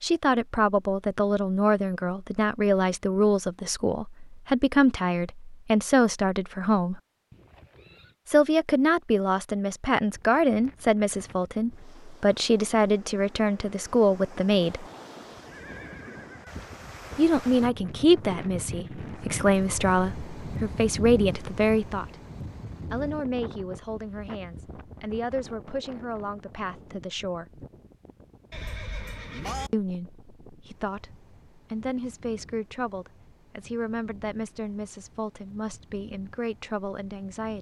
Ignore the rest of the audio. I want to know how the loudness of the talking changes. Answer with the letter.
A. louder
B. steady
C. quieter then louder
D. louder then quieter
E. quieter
E.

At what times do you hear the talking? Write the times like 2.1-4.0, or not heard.
0.0-7.0, 8.2-14.8, 17.1-22.2, 22.9-27.6, 29.7-37.5.